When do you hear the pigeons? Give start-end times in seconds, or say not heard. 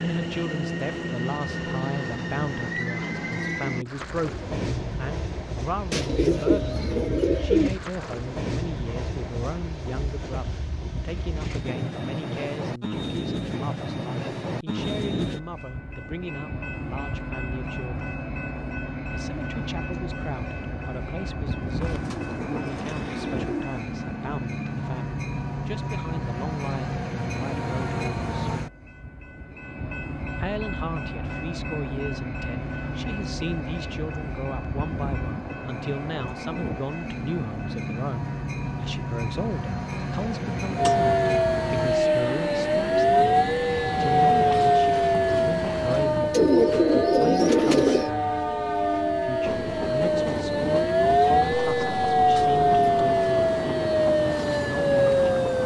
5.9-7.7, 21.8-23.8, 46.3-48.1.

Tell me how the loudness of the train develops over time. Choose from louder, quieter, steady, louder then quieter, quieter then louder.
steady.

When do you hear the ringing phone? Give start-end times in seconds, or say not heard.
not heard.